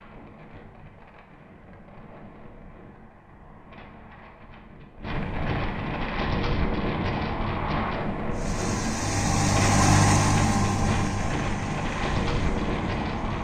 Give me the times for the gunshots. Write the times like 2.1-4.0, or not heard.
not heard.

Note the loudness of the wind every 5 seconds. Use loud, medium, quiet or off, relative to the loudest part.
quiet, loud, loud.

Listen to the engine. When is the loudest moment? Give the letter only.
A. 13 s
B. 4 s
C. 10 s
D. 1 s
C.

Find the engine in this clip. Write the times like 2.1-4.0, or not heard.
8.3-13.3.